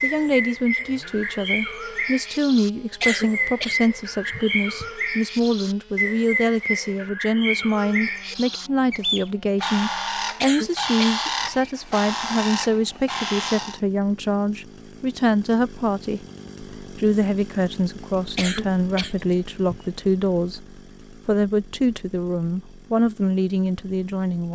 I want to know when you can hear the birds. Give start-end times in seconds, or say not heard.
0.0-13.8.